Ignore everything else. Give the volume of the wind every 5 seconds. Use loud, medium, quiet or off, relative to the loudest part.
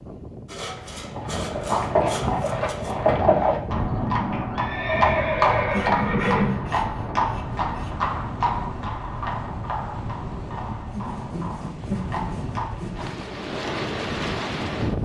medium, medium, loud.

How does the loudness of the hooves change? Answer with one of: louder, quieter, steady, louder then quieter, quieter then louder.
quieter.